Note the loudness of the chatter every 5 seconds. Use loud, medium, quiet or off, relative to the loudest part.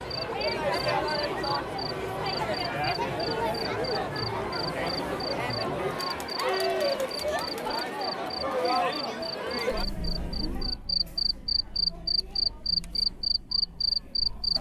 loud, loud, quiet.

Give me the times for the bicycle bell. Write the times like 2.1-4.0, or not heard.
not heard.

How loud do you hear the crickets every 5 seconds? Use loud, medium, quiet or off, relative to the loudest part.
medium, medium, loud.